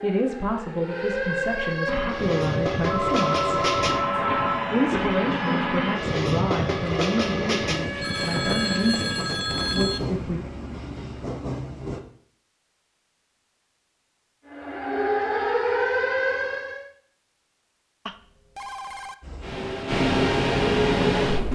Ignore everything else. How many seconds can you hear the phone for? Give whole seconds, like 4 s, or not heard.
5 s.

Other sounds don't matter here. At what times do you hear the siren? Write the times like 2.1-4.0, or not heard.
0.0-9.3, 14.4-16.9.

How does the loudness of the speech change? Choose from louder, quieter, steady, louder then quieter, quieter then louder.
steady.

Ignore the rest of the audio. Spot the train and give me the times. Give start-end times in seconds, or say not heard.
1.9-12.0, 19.2-21.5.